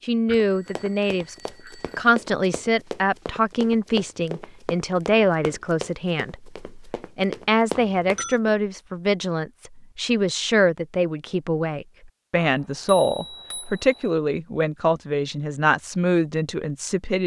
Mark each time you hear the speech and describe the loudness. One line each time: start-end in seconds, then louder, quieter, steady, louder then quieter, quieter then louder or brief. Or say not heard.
0.0-1.4 brief
1.9-17.2 steady.